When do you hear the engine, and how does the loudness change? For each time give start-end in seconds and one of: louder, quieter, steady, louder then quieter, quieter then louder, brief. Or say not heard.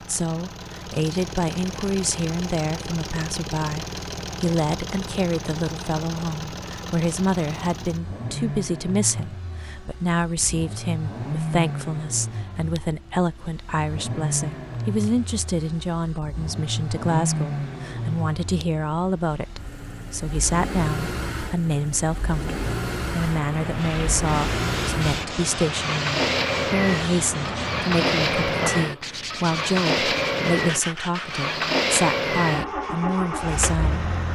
0.0-34.3 louder.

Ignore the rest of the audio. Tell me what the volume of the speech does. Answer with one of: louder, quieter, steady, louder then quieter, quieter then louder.
steady.